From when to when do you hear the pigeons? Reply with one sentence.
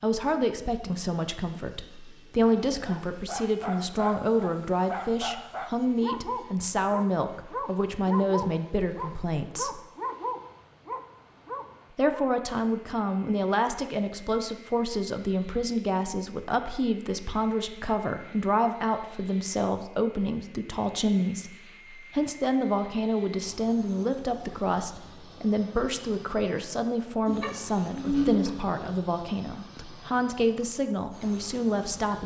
You can hear the pigeons from 27.2 to 28.8 s.